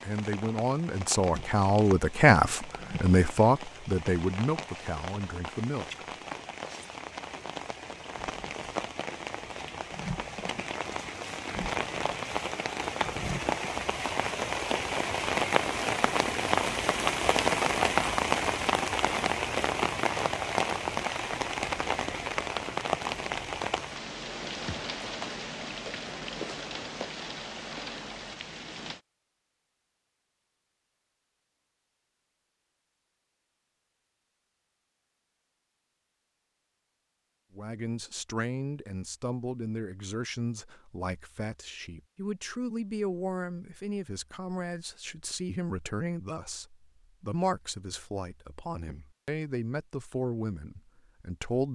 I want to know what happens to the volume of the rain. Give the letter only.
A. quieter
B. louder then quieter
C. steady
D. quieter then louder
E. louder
B.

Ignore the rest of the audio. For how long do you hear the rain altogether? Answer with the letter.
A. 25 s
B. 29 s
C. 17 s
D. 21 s
B.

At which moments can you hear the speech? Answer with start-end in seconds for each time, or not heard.
0.0-6.0, 37.5-51.7.